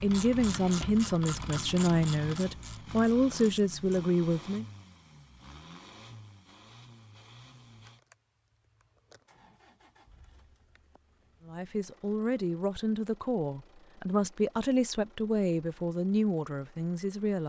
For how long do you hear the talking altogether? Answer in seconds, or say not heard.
11 s.